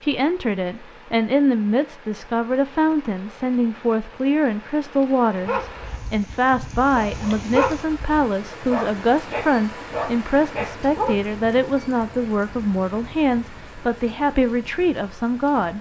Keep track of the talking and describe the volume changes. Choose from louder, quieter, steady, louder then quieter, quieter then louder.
steady.